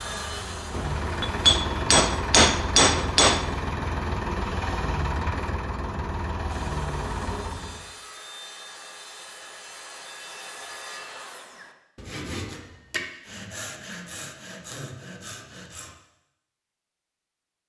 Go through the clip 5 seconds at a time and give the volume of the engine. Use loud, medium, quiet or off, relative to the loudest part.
loud, loud, off, off.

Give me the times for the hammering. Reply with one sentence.
The hammering can be heard from 0.7 to 3.5 s.